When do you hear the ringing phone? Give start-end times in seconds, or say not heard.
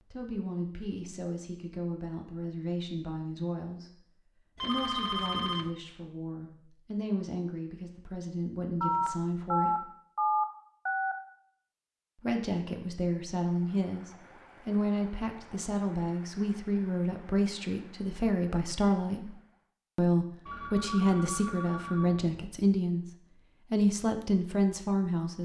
4.6-5.7, 8.8-11.2, 20.4-22.4.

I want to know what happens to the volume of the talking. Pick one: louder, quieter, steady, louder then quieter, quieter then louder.
louder.